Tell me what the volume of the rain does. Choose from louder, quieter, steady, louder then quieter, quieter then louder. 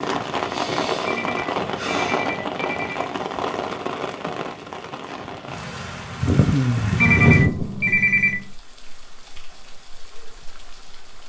quieter.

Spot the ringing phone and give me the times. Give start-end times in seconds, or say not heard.
1.1-3.1, 7.0-8.4.